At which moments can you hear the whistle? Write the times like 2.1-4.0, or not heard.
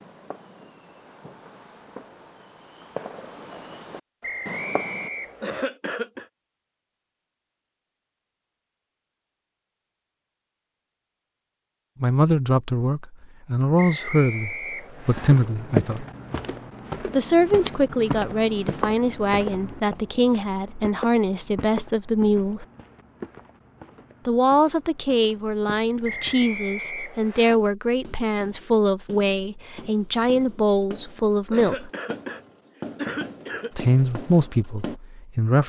4.2-5.6, 13.8-15.3, 26.0-27.6.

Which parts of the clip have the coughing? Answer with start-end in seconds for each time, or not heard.
5.4-6.2, 31.5-33.7.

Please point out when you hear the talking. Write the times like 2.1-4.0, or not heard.
12.0-16.1, 17.1-22.6, 24.2-31.9, 33.8-35.6.